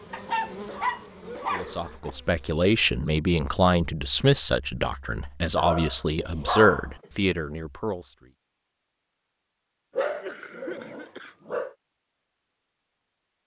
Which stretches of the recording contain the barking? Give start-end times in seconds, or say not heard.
0.1-2.1, 5.5-7.0, 9.9-11.8.